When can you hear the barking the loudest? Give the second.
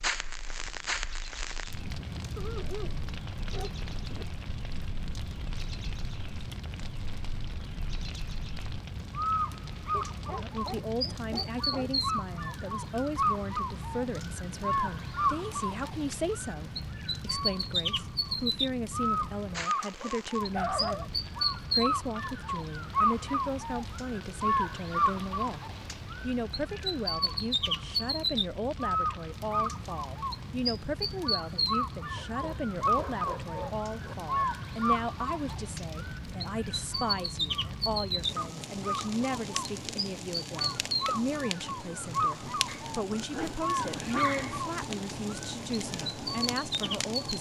21 s.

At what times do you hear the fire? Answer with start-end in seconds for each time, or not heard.
0.0-47.3.